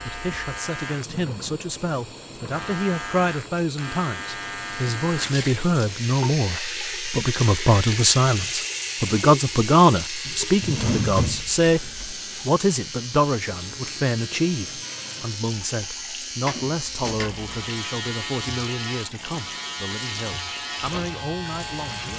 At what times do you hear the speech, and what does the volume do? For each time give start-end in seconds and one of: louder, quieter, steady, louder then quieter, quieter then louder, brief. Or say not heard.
0.1-22.1 louder then quieter.